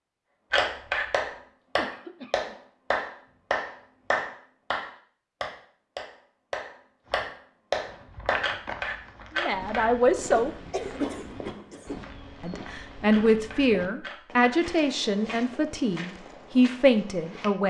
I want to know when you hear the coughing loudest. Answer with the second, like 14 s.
11 s.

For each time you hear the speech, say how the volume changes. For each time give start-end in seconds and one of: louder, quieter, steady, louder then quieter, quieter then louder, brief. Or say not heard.
9.3-10.6 brief
12.4-17.6 quieter then louder.